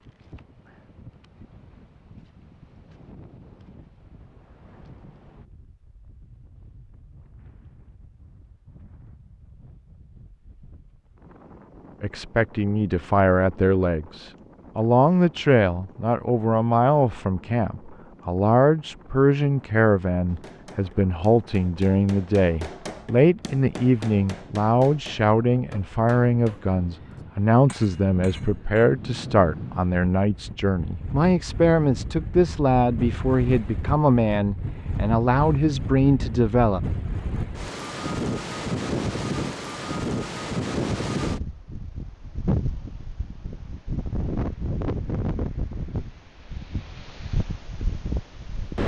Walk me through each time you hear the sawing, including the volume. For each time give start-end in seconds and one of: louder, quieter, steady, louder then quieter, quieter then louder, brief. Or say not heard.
not heard.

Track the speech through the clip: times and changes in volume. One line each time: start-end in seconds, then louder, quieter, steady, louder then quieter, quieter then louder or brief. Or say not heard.
12.0-36.8 steady.